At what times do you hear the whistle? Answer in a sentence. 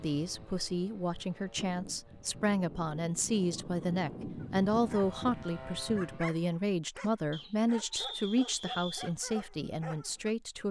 You can hear the whistle from 7.3 to 9.1 s.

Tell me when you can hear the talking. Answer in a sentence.
You can hear the talking from 0.0 to 10.6 s.